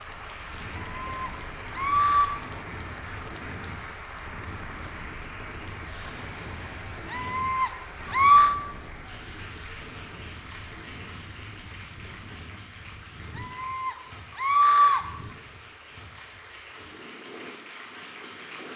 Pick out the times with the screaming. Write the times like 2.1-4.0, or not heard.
0.7-2.4, 7.1-8.6, 13.3-15.0.